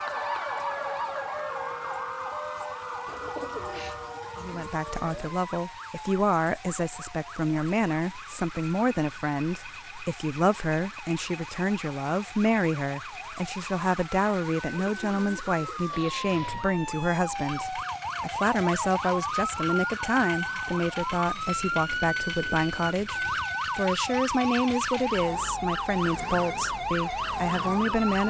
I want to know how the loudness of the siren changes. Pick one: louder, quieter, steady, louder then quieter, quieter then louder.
quieter then louder.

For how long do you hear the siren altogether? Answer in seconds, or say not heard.
28 s.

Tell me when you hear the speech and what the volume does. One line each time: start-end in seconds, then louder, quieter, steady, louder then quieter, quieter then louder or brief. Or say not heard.
4.4-28.2 steady.